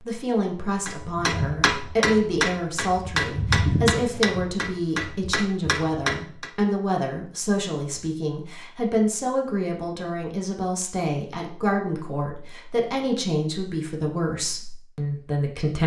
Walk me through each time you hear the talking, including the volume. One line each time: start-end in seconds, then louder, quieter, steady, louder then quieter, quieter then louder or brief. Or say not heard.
0.0-15.8 steady.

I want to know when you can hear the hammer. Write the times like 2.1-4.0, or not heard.
0.8-6.5.